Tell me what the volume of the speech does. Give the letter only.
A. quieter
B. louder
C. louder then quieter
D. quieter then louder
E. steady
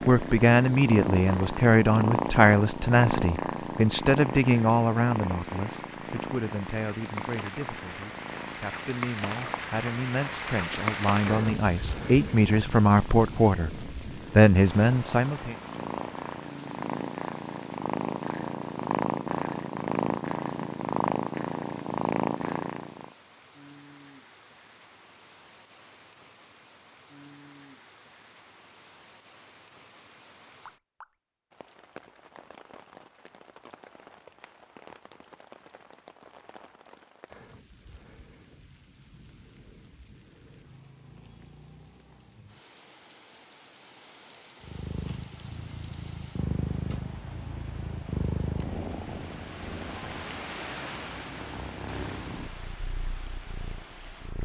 D.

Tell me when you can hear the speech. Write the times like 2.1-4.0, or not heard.
0.1-15.6.